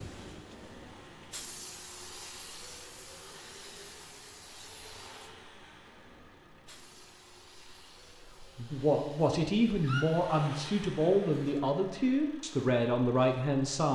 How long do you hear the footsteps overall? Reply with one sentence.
The footsteps can't be heard in this clip.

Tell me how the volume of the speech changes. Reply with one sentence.
The volume of the speech stays about the same.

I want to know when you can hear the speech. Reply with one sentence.
You can hear the speech from 8.4 to 13.9 s.